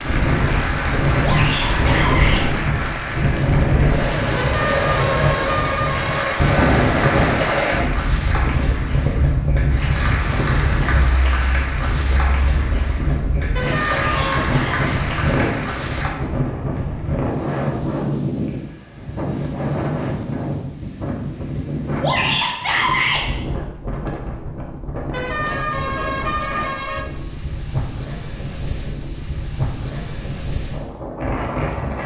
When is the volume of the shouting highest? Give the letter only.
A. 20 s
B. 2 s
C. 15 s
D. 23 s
D.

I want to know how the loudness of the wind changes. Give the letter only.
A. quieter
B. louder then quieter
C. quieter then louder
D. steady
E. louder
A.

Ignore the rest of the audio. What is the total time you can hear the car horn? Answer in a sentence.
The car horn can be heard for 5 seconds in total.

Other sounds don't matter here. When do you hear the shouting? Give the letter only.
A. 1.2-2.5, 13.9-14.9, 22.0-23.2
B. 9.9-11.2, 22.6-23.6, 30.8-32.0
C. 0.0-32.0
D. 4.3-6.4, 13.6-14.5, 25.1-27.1
A.